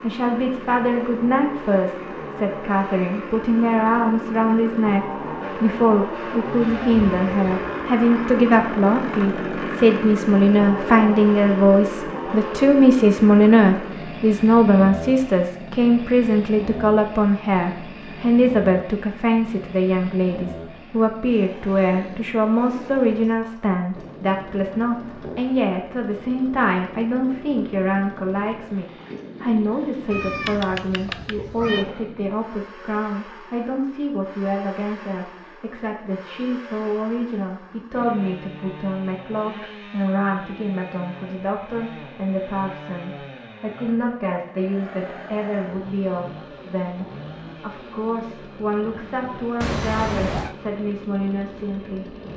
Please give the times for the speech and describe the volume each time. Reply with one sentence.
You can hear the speech from 0.0 to 52.1 s, getting quieter.